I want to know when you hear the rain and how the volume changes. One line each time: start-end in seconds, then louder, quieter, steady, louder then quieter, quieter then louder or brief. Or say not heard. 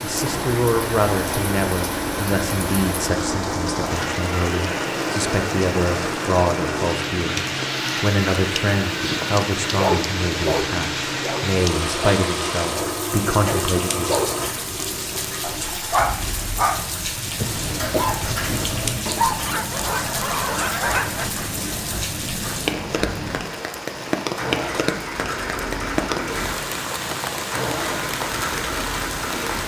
0.0-29.6 steady.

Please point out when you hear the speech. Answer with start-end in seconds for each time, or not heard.
0.0-14.2.